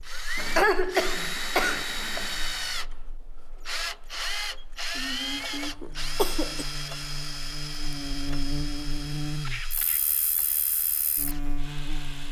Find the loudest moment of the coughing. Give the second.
1 s.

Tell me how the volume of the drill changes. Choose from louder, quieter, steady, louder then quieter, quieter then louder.
quieter.